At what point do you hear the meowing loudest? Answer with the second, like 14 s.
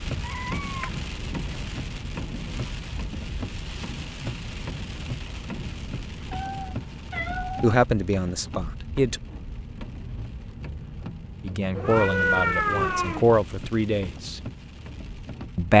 12 s.